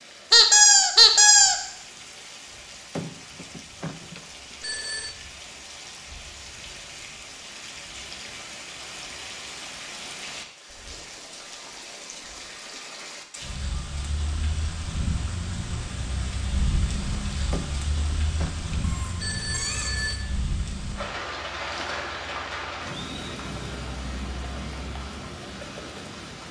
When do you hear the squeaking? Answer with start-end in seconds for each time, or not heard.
0.3-1.6, 18.8-20.1.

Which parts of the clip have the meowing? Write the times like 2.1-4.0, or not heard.
not heard.